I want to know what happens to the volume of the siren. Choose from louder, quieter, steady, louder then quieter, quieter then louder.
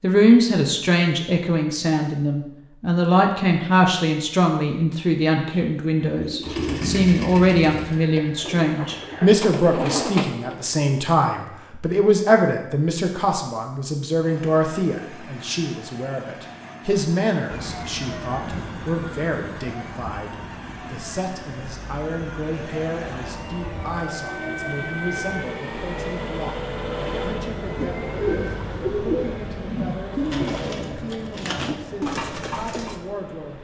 quieter then louder.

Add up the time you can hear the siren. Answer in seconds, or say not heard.
8 s.